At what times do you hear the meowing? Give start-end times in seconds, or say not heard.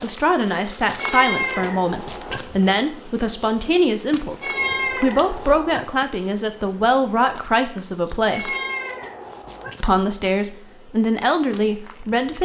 0.9-2.4, 4.4-5.8, 8.3-9.7.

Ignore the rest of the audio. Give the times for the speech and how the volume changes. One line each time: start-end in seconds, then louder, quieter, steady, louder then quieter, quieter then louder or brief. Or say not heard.
0.0-8.6 steady
9.8-12.4 brief.